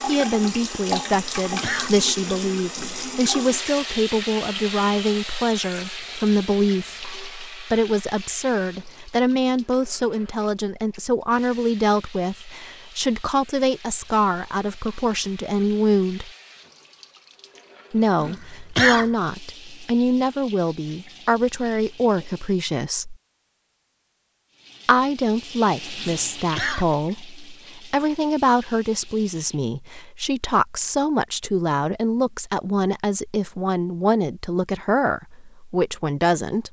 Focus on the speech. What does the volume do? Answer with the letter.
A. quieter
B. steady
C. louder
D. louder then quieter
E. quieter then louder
B.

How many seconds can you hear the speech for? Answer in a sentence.
The speech can be heard for 33 seconds in total.